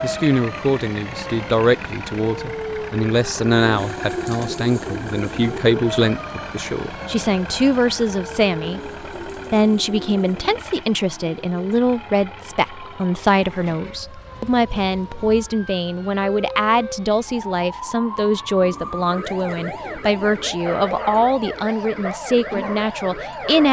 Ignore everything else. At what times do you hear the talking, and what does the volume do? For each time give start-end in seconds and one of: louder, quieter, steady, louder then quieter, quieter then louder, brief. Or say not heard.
0.0-8.8 steady
9.5-23.6 steady.